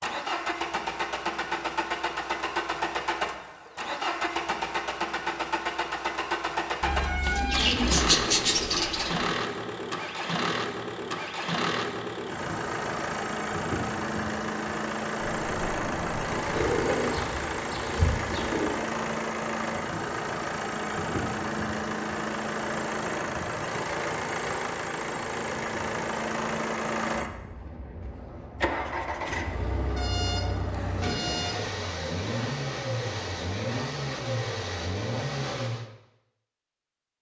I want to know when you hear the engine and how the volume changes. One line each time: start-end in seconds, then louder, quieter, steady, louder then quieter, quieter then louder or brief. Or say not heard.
0.0-35.9 steady.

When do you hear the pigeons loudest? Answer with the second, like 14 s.
8 s.